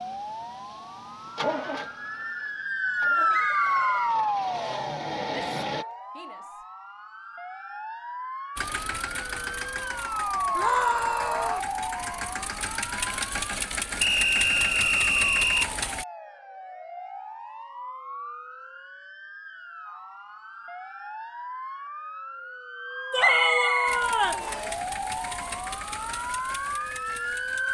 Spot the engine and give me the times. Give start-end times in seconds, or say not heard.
0.0-5.8, 8.6-16.1, 23.9-27.6.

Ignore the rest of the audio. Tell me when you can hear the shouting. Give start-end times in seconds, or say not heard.
5.5-6.5, 10.6-11.7, 23.1-24.4.